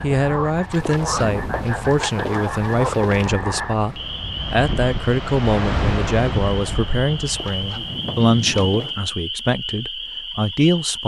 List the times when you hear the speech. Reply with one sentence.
The speech can be heard from 0.0 to 11.0 s.